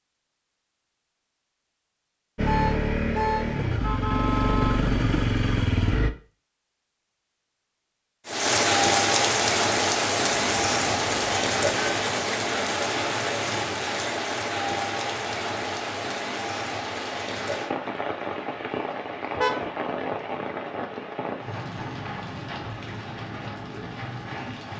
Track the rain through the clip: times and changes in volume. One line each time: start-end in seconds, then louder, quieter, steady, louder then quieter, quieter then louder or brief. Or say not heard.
8.2-24.7 quieter.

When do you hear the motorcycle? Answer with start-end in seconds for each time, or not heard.
2.4-6.1.